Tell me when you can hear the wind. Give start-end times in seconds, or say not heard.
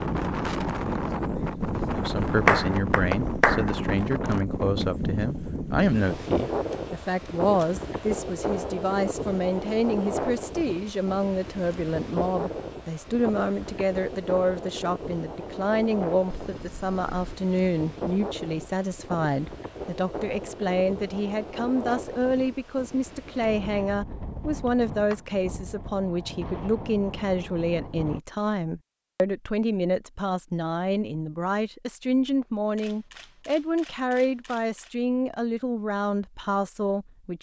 0.0-28.2.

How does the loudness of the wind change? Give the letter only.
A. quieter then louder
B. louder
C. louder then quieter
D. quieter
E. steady
D.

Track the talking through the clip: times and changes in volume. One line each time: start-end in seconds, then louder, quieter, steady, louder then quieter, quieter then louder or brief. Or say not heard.
1.9-37.3 steady.